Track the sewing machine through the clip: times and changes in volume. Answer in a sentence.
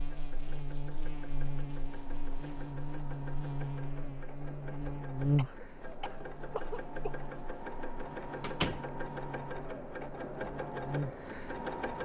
The sewing machine can be heard from 0.0 to 12.0 s, getting louder.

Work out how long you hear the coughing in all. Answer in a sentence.
The coughing can be heard for 2 seconds in total.